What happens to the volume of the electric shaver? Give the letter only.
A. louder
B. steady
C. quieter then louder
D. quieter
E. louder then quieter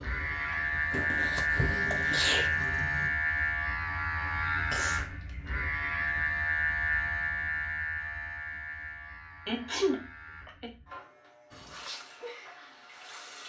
D.